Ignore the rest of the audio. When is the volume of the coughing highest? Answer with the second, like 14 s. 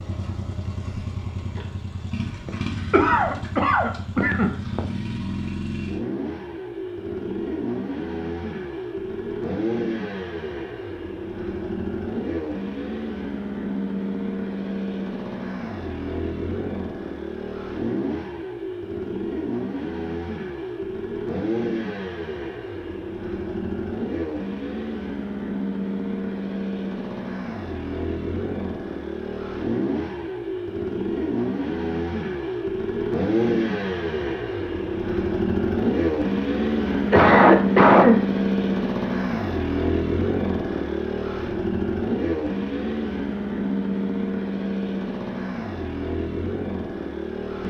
38 s.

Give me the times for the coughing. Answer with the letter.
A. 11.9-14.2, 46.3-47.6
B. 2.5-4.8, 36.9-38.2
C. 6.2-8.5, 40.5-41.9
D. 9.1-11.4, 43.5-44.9
B.